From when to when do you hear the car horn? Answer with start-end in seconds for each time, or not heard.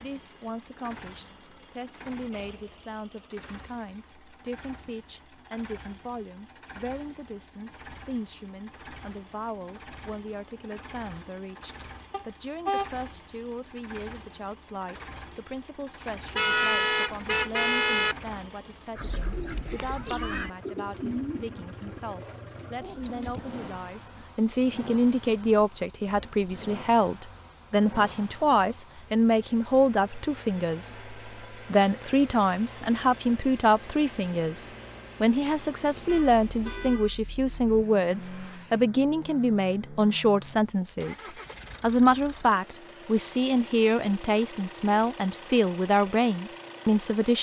12.1-12.9, 16.4-18.1, 36.0-37.8.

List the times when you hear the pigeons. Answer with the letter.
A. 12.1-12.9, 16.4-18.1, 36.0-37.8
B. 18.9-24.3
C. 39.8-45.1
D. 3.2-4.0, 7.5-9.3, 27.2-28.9
B.